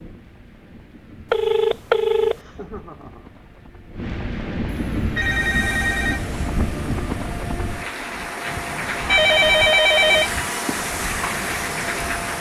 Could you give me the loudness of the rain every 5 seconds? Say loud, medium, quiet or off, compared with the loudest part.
medium, loud, loud.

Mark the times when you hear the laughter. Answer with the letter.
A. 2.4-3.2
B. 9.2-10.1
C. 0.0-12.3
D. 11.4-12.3
A.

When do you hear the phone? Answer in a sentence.
You can hear the phone from 1.3 to 2.4 s, from 4.7 to 6.2 s and from 9.1 to 10.8 s.